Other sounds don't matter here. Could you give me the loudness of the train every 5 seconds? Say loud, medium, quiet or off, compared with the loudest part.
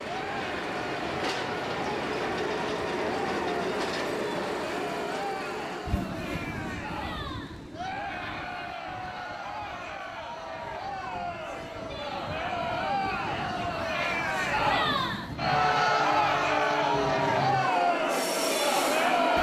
loud, medium, medium, loud.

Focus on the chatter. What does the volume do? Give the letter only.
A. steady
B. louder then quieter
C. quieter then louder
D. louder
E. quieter
D.